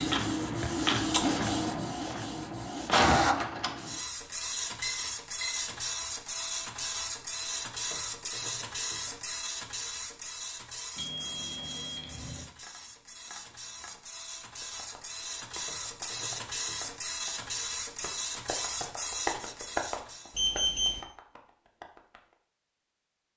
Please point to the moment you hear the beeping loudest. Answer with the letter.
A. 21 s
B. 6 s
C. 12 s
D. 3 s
A.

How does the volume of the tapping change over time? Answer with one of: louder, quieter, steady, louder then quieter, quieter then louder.
louder then quieter.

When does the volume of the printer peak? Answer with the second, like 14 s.
3 s.